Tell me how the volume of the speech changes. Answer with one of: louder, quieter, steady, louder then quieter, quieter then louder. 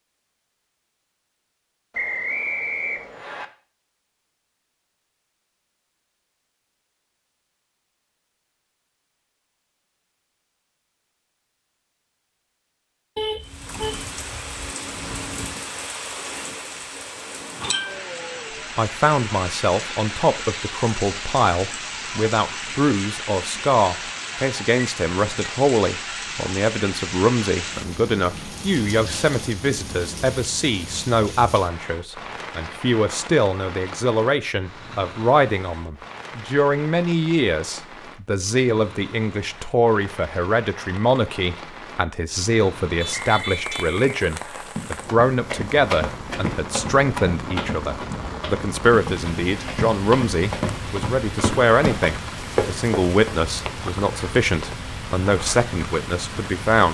steady.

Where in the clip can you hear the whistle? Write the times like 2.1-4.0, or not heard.
1.9-3.5, 43.3-44.6.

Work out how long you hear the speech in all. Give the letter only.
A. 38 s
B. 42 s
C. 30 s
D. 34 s
A.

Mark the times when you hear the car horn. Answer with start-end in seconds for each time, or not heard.
13.2-14.8, 43.0-44.0.